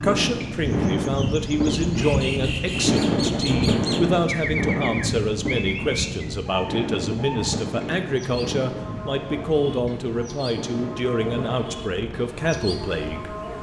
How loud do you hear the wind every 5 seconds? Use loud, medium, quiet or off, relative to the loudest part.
loud, medium, quiet.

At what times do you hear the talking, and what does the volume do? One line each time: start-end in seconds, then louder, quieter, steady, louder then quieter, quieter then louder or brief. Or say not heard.
0.0-13.3 steady.